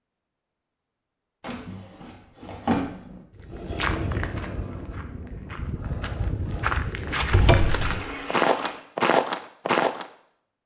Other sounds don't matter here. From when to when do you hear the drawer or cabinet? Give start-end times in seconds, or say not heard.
1.4-3.2, 7.3-7.9.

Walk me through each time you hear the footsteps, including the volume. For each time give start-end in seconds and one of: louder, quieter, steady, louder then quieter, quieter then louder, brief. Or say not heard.
3.4-10.1 quieter then louder.